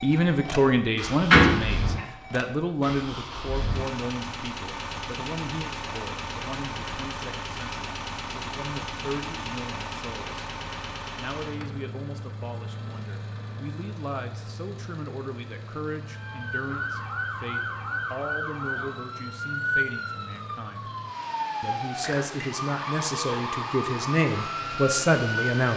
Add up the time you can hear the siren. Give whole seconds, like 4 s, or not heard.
10 s.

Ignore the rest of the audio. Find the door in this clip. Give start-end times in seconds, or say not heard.
1.3-2.0.